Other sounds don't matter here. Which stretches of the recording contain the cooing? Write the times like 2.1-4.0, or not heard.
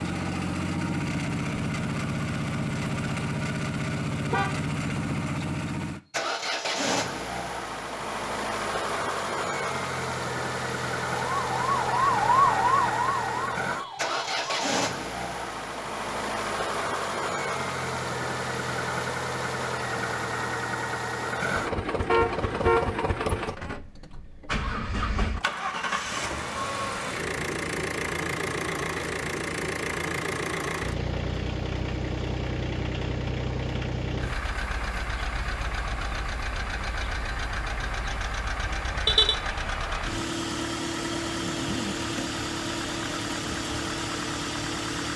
not heard.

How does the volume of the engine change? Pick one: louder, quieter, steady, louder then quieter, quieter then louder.
steady.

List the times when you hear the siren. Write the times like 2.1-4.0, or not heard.
11.1-14.7.